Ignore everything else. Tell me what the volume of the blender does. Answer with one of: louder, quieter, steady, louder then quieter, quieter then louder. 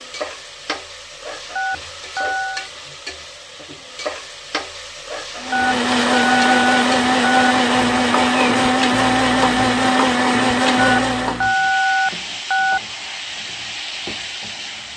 steady.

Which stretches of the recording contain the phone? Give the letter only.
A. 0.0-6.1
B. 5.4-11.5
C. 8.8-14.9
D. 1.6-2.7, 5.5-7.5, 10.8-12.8
D.